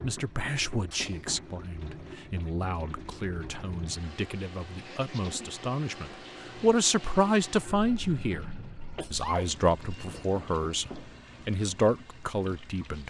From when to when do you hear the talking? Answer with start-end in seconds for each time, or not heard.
0.0-8.4, 9.1-13.0.